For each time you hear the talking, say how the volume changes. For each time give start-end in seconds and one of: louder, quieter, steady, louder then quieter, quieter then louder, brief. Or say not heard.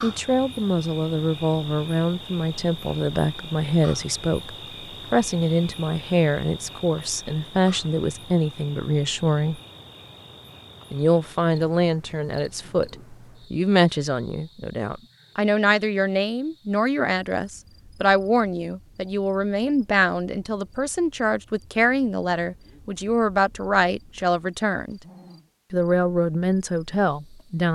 0.0-9.6 steady
10.9-25.0 steady
25.7-27.7 brief.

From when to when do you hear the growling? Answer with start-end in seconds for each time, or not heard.
24.9-25.5.